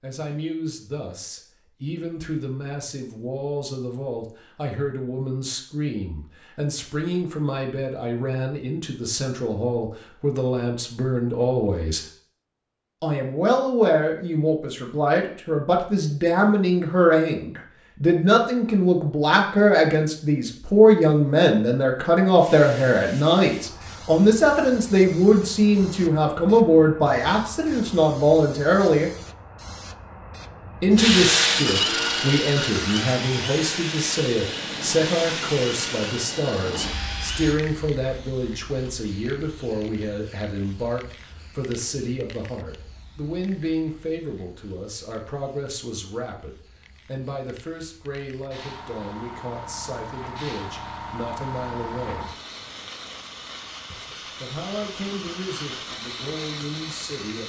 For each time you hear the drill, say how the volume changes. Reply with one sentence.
You can hear the drill from 30.9 to 37.6 s, getting quieter.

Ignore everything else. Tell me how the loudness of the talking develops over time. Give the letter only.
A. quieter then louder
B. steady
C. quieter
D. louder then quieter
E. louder
D.